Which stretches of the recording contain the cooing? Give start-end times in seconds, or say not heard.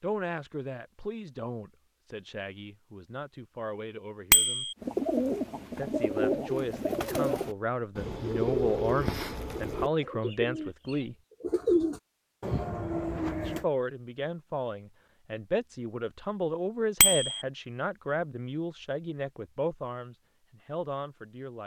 4.8-13.7.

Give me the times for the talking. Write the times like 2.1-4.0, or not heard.
0.0-4.7, 5.8-11.2, 13.4-21.6.